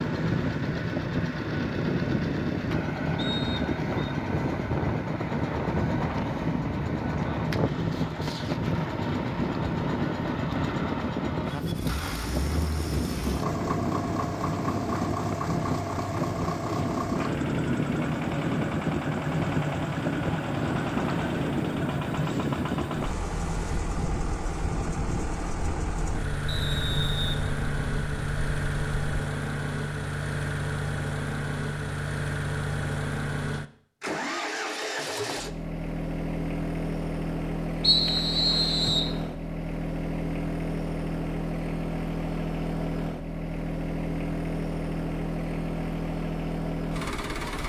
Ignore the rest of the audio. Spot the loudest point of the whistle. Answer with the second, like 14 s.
38 s.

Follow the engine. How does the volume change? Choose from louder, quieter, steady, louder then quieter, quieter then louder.
steady.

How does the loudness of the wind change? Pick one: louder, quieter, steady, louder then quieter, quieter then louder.
steady.